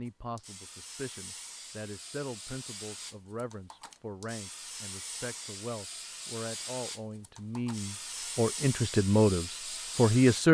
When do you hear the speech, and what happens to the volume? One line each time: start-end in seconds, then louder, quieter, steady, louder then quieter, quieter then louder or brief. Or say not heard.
0.0-10.4 louder.